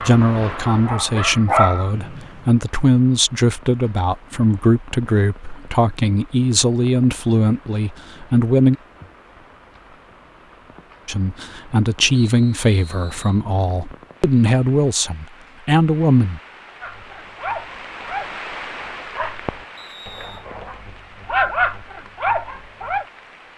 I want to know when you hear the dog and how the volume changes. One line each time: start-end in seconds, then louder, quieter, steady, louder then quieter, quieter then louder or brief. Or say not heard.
0.0-1.9 brief
16.8-23.1 quieter then louder.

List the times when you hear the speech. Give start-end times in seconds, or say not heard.
0.0-8.8, 11.1-16.4.